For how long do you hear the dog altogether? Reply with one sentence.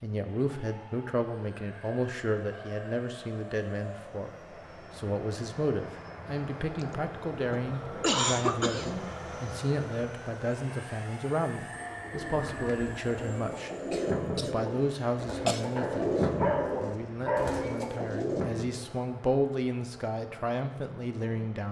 You can hear the dog for 2 seconds altogether.